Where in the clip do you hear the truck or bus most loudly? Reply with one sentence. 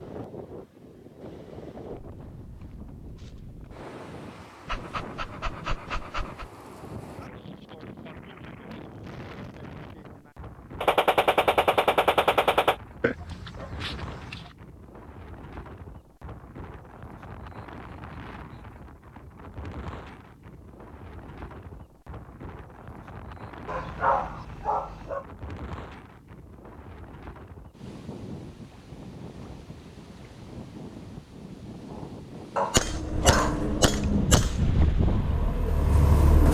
The loudest moment of the truck or bus is at 36 seconds.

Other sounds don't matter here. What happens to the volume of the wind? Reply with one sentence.
The loudness of the wind goes up.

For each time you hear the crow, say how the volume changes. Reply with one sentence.
The crow can't be heard in this clip.